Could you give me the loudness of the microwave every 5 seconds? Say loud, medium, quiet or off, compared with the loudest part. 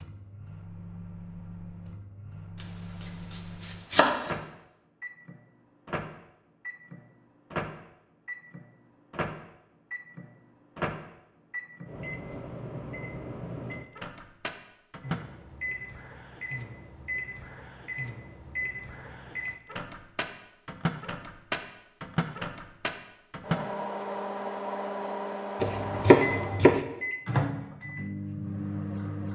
medium, medium, medium, medium, loud, loud.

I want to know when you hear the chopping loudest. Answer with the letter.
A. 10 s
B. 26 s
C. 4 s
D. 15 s
B.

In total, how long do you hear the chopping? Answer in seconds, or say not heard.
3 s.